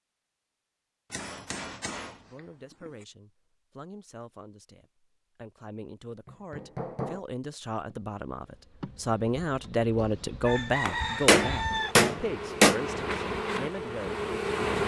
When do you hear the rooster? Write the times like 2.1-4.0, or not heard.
9.9-11.9.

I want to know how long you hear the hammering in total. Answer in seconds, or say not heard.
4 s.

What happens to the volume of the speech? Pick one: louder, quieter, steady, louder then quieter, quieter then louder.
louder then quieter.